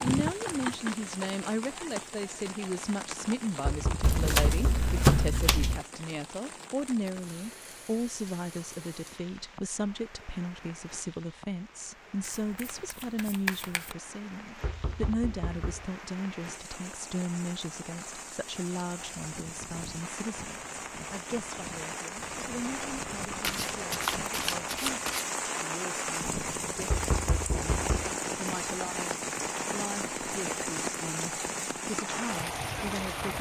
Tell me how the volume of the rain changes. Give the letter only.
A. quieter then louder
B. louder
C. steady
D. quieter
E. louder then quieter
A.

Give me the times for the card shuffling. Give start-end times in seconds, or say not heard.
4.0-5.8, 12.2-13.9, 23.4-25.3.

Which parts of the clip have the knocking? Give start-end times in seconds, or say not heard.
3.6-4.9, 14.6-15.8, 26.9-27.9.